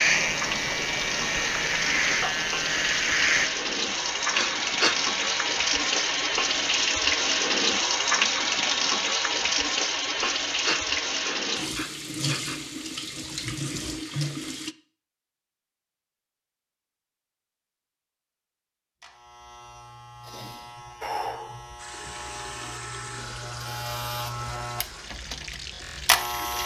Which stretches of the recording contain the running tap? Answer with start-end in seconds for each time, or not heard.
0.0-14.8, 21.8-26.6.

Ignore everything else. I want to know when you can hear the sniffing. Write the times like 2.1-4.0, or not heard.
4.3-5.0, 10.2-12.6, 20.2-21.8.